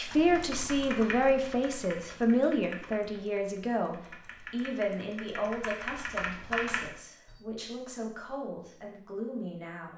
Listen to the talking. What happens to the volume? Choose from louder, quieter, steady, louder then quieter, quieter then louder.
quieter.